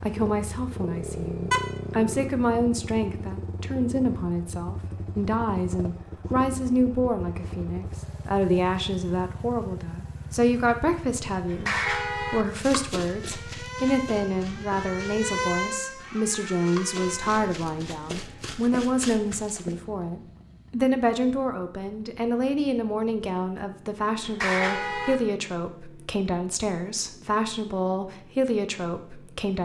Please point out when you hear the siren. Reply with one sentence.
The siren can be heard from 13.0 to 17.4 s.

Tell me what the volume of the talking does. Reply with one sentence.
The loudness of the talking stays about the same.